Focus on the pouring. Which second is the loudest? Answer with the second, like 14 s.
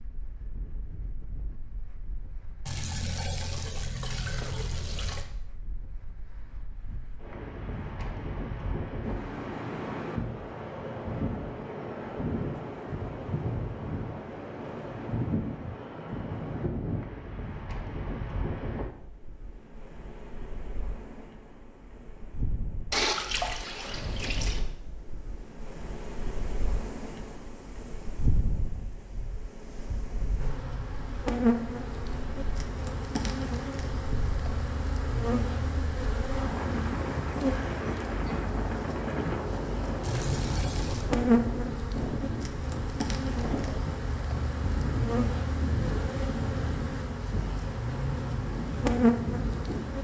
23 s.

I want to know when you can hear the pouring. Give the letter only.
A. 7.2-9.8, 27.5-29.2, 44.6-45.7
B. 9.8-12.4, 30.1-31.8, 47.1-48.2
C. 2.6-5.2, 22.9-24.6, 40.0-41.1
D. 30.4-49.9
C.